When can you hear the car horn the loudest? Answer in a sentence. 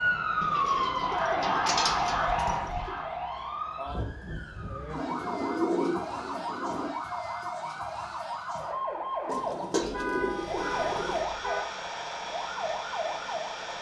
The loudest moment of the car horn is at 10 seconds.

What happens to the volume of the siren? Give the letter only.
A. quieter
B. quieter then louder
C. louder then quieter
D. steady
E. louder
A.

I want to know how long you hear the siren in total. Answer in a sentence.
You can hear the siren for 14 seconds altogether.